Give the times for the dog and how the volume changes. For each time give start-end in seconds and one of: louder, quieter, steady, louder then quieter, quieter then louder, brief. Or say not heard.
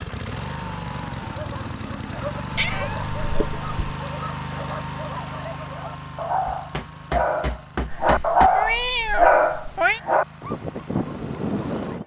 1.2-12.0 louder then quieter.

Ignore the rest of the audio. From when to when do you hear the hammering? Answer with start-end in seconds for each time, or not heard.
6.5-8.5.